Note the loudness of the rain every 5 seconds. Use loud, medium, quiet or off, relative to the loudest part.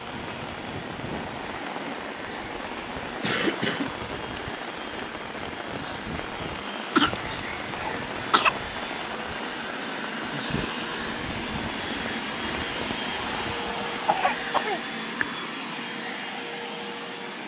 loud, loud, loud, off.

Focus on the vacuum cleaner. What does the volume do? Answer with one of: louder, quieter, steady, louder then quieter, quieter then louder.
louder.